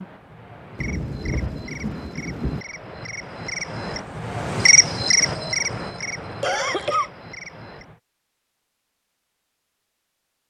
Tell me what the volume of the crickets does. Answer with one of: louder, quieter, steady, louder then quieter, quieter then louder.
louder then quieter.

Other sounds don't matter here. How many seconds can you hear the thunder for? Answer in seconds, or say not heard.
2 s.